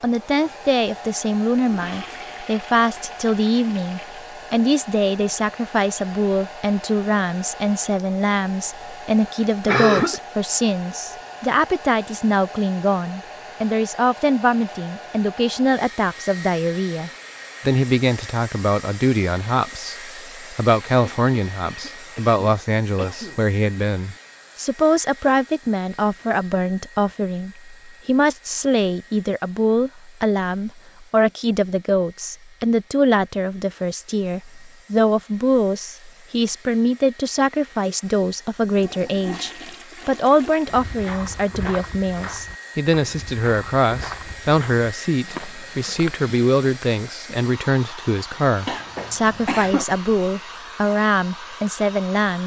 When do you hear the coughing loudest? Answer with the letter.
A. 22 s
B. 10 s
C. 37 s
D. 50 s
B.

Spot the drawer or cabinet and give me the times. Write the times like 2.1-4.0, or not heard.
not heard.